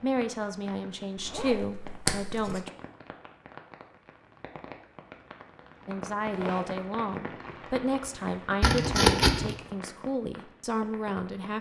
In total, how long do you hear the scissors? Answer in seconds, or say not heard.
2 s.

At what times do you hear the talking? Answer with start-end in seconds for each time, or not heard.
0.0-2.7, 5.8-11.5.